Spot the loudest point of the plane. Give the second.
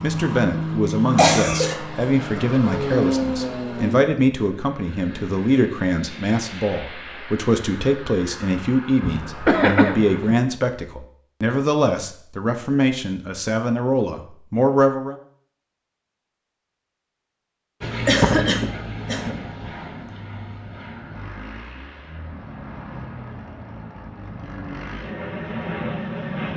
3 s.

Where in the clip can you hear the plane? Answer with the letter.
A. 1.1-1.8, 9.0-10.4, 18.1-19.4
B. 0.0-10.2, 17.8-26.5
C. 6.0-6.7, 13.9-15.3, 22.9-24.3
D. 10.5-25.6
B.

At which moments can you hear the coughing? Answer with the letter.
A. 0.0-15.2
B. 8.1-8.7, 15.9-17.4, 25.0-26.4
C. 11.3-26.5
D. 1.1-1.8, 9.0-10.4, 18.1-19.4
D.